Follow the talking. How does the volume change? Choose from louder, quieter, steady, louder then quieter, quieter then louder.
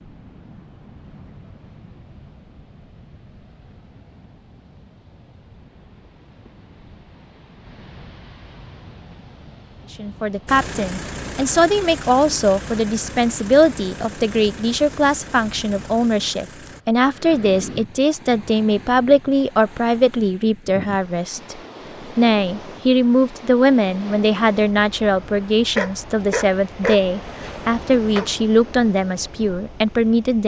steady.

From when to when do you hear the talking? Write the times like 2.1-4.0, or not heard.
9.9-21.6, 22.1-30.4.